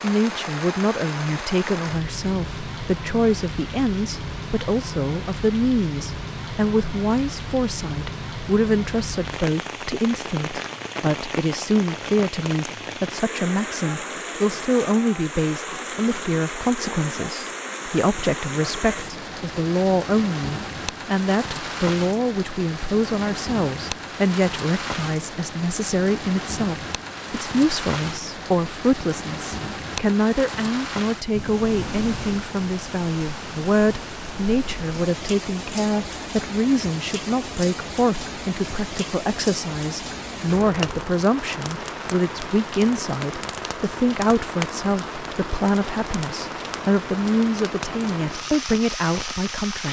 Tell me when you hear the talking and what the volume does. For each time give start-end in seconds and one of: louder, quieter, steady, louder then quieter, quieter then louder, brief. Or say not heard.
0.0-49.8 steady.